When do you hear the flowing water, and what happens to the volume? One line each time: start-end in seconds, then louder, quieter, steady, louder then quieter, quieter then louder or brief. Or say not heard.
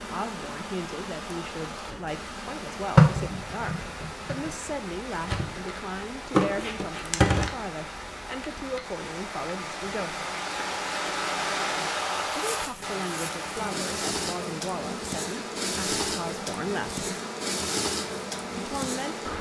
0.0-19.3 louder then quieter.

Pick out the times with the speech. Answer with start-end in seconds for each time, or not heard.
0.0-10.2, 12.3-17.1, 18.6-19.3.